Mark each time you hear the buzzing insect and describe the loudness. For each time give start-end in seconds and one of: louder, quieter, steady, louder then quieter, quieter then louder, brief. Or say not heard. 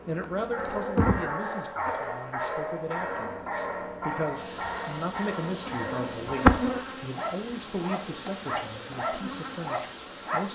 0.0-7.3 quieter then louder
8.2-10.5 brief.